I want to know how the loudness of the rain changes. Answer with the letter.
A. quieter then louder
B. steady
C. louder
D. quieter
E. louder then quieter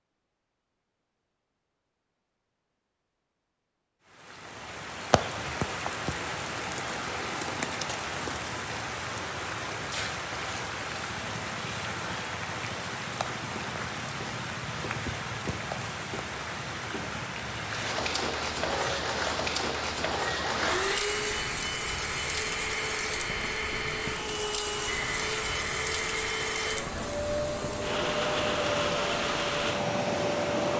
B.